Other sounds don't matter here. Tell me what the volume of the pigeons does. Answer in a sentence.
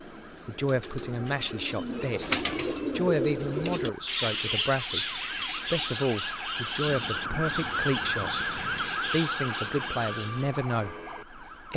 The volume of the pigeons goes down.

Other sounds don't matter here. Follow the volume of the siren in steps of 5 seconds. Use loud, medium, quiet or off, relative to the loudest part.
quiet, loud, medium.